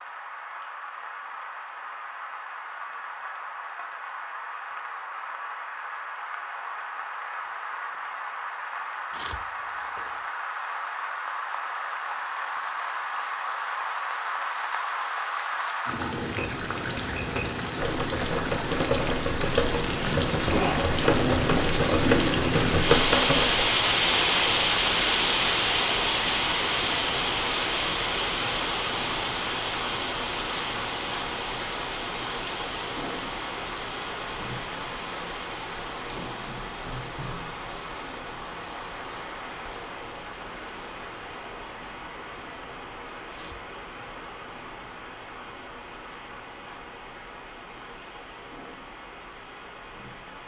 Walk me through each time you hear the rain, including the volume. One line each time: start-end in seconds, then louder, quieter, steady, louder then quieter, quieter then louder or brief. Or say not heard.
0.0-50.4 louder then quieter.